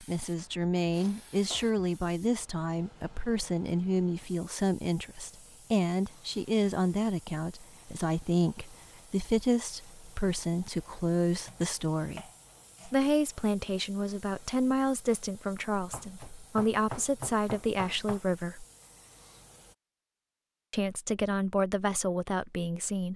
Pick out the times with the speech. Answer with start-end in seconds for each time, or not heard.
0.0-12.2, 12.8-18.6, 20.7-23.1.